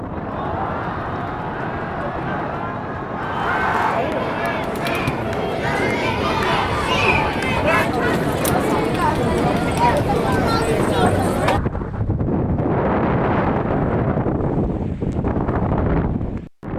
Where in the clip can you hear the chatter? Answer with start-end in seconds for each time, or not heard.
0.0-11.6.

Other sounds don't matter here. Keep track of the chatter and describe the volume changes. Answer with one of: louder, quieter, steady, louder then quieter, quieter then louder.
louder.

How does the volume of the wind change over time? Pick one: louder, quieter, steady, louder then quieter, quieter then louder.
louder.